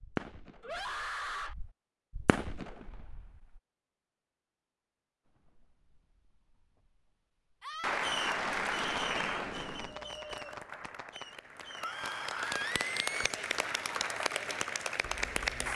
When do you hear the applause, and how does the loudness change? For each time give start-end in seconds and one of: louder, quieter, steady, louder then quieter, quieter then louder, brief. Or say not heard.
7.8-15.7 quieter then louder.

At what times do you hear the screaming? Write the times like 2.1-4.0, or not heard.
0.6-1.6, 7.6-8.1, 11.8-13.3.